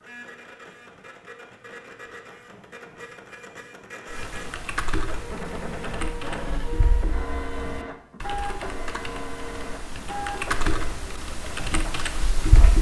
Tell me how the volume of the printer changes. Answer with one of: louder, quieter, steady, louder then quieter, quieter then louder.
louder.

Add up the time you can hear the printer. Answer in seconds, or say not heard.
13 s.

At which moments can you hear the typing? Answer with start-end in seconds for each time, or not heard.
4.1-12.7.